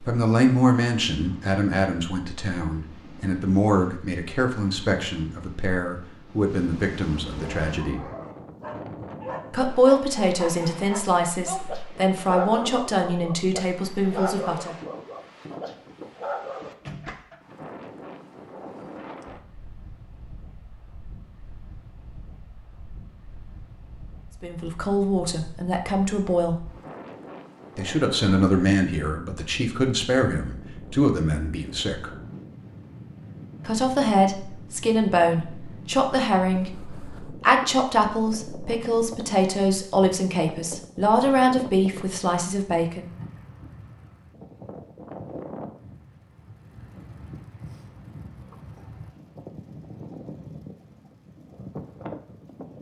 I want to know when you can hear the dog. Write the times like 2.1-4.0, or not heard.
7.3-16.7.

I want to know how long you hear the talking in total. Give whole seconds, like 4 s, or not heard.
29 s.